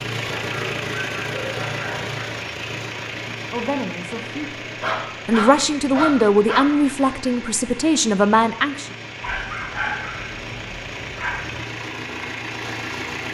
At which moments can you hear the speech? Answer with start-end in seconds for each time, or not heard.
3.5-8.9.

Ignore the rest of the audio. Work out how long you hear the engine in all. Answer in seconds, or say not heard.
13 s.